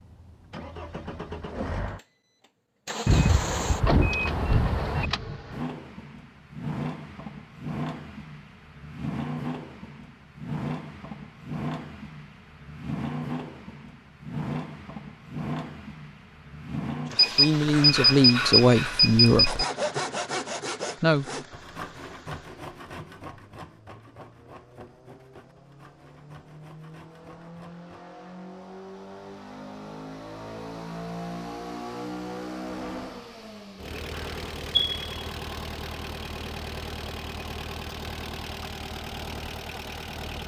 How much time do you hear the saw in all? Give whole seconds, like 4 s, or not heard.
10 s.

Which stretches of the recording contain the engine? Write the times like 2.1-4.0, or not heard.
0.0-40.4.